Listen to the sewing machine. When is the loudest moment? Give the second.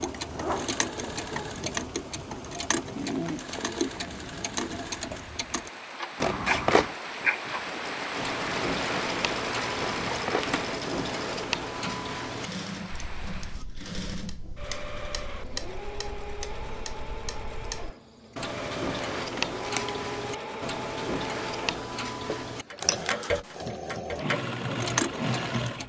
25 s.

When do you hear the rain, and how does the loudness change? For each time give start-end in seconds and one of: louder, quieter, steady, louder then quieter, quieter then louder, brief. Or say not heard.
0.0-13.7 louder then quieter.